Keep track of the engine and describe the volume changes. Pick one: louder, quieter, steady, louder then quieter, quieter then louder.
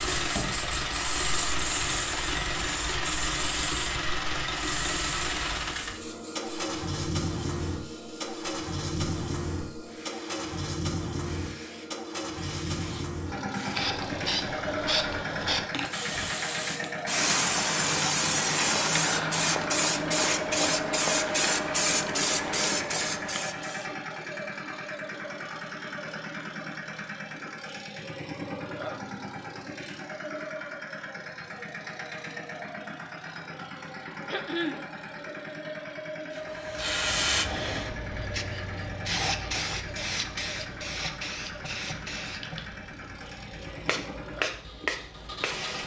quieter.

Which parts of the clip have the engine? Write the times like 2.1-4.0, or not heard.
0.0-45.8.